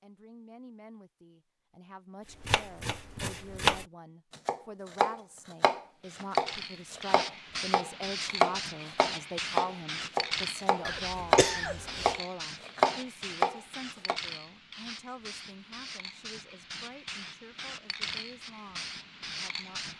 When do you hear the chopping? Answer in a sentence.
The chopping can be heard from 2.4 to 14.2 s.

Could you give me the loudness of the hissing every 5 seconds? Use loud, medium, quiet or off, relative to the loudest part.
off, loud, loud, loud.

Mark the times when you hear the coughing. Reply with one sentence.
You can hear the coughing from 10.8 to 12.2 s.